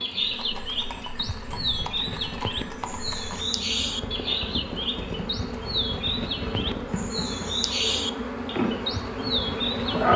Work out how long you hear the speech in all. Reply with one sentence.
You can't hear the speech here.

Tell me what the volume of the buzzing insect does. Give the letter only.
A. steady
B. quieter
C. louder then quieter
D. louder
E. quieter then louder
D.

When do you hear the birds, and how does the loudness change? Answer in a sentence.
You can hear the birds from 0.0 to 10.1 s, at a steady volume.